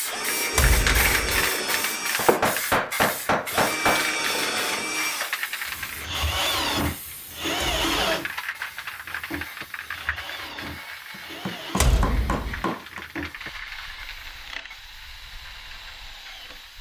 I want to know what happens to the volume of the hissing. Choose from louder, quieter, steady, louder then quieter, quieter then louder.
quieter.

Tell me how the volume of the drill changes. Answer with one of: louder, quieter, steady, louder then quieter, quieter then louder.
quieter.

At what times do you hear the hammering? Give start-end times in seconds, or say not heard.
2.1-4.1, 11.4-13.0.